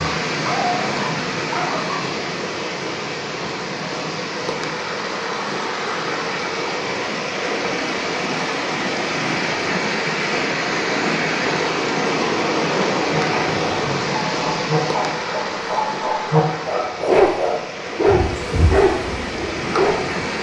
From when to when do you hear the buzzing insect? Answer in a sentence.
The buzzing insect can be heard from 18.1 to 20.3 s.